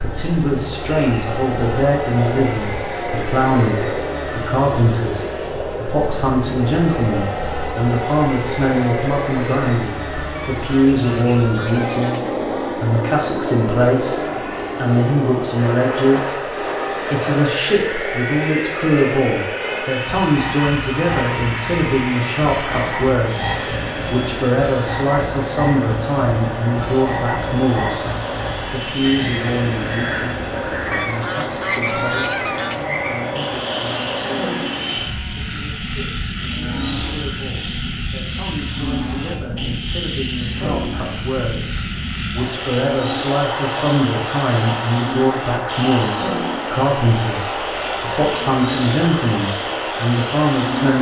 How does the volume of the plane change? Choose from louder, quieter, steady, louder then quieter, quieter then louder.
steady.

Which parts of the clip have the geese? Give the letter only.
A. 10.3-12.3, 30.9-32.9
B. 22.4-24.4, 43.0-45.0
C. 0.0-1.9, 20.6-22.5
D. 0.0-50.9
A.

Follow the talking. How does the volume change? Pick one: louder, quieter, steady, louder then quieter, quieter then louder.
quieter then louder.